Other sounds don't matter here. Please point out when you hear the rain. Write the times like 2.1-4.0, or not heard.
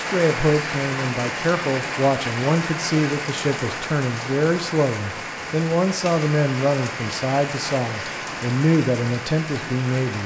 0.0-10.2.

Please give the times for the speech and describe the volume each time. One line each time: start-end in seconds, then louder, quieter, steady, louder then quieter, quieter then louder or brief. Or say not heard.
0.0-10.2 steady.